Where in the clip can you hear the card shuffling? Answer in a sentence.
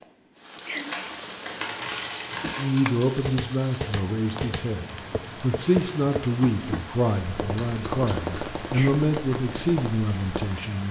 You can hear the card shuffling from 0.9 to 2.9 s and from 7.4 to 8.5 s.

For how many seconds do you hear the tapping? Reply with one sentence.
You can hear the tapping for 8 seconds altogether.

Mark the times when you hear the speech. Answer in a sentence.
The speech can be heard from 2.5 to 10.8 s.